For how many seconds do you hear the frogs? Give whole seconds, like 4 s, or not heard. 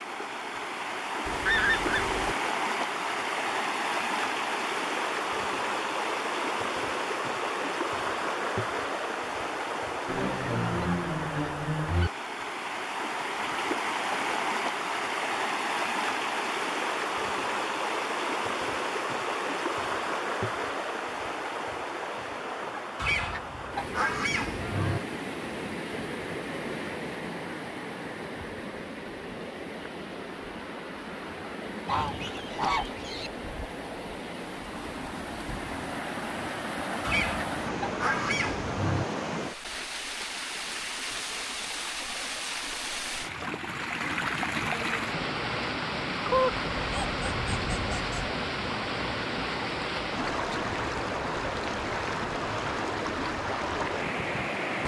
not heard.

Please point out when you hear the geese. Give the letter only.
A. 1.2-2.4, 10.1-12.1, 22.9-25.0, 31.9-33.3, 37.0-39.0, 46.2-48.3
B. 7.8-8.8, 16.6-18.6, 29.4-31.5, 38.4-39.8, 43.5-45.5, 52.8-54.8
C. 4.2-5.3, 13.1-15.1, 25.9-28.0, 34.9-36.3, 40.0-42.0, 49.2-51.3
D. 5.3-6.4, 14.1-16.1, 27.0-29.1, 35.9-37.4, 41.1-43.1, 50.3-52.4
A.